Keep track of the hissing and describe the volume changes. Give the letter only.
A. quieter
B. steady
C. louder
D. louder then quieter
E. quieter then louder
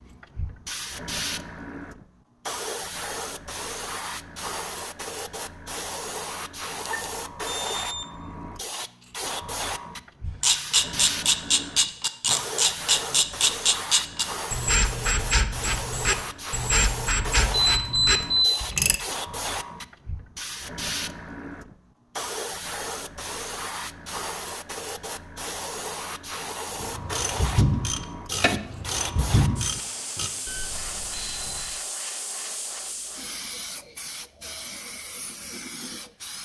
B.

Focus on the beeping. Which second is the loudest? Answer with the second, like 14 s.
18 s.